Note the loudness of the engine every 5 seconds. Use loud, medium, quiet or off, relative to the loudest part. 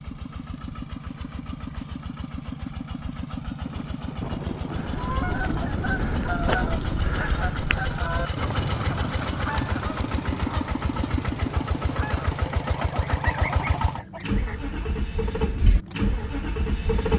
medium, loud, loud, loud.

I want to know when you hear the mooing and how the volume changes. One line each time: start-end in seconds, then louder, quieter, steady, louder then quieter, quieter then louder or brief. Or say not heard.
not heard.